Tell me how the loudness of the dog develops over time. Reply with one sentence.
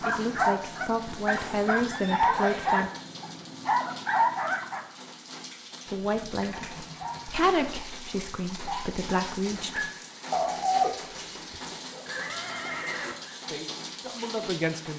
The loudness of the dog goes down, then up.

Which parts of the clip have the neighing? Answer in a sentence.
The neighing can be heard from 1.3 to 2.9 s, from 6.0 to 7.3 s and from 12.1 to 13.4 s.